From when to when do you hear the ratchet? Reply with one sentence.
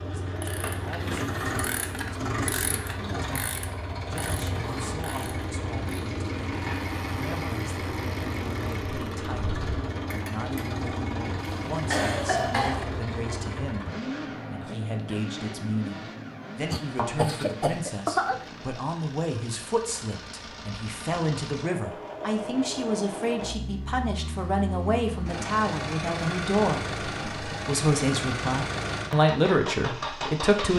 You can hear the ratchet from 0.2 to 10.7 s.